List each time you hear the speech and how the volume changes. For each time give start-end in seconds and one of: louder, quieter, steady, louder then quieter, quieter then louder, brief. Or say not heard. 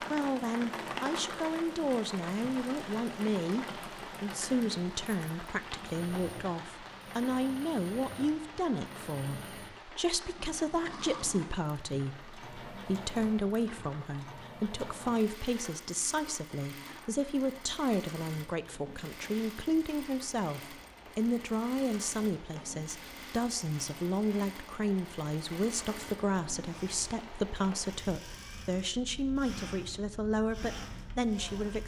0.0-31.8 steady.